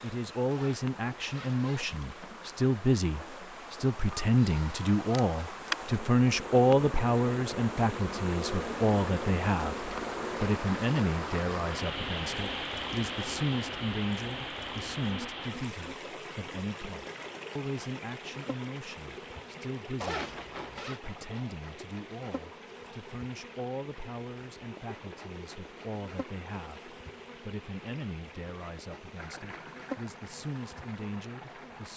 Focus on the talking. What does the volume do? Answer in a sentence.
The volume of the talking goes down.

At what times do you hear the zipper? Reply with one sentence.
You can hear the zipper from 0.5 to 2.4 s and from 20.0 to 21.0 s.